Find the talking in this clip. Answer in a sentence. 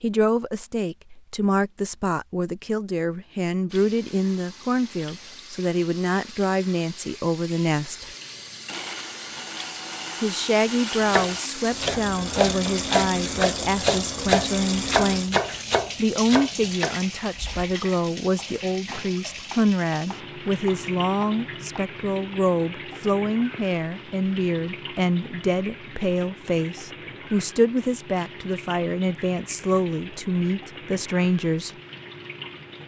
The talking can be heard from 0.0 to 8.1 s and from 10.2 to 31.7 s.